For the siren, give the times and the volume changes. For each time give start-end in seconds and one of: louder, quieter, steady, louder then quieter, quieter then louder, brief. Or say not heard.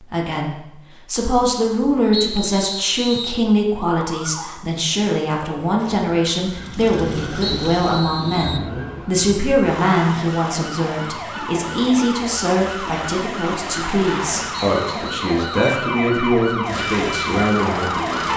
3.9-18.3 louder.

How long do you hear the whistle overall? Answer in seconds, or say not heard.
4 s.